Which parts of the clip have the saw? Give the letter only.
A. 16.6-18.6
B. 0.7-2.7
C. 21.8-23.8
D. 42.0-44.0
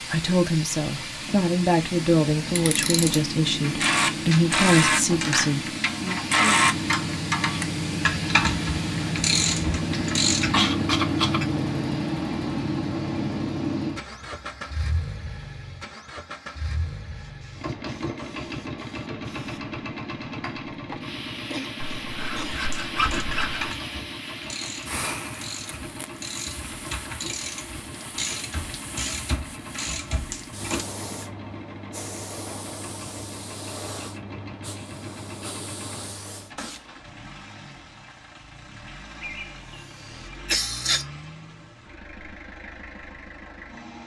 C.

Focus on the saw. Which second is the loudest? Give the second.
23 s.